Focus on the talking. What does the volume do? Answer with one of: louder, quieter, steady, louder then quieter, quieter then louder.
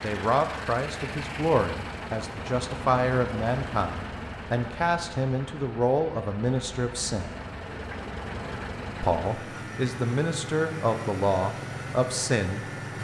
steady.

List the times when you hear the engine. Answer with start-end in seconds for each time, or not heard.
0.0-12.9.